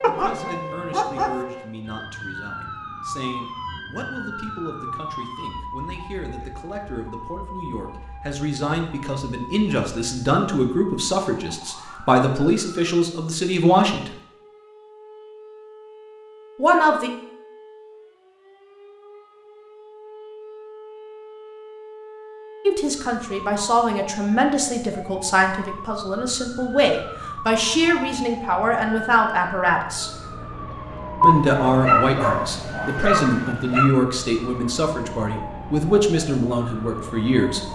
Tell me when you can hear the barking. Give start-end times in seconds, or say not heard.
0.0-1.4, 31.2-33.9.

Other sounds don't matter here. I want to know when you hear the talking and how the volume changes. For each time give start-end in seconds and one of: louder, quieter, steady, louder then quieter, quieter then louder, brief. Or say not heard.
0.0-14.1 louder
16.6-17.1 brief
22.6-30.1 steady
31.2-37.6 steady.